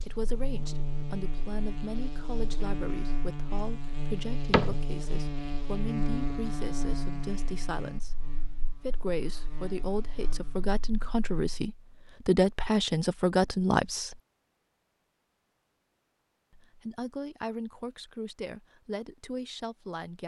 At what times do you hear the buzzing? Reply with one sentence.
The buzzing can be heard from 0.0 to 11.7 s.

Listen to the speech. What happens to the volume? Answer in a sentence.
The volume of the speech goes up, then down.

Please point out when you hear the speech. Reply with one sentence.
You can hear the speech from 0.0 to 14.2 s and from 16.5 to 20.2 s.